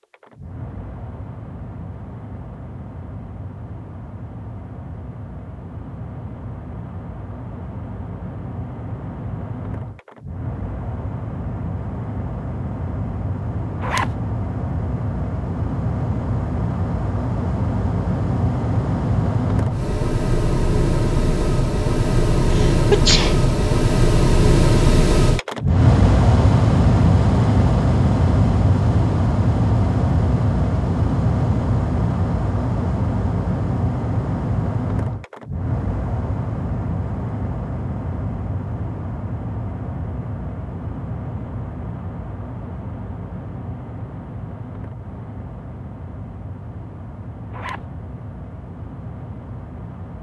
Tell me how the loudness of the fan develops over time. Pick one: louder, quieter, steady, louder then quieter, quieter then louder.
louder then quieter.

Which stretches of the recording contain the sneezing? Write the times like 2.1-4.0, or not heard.
22.5-23.4.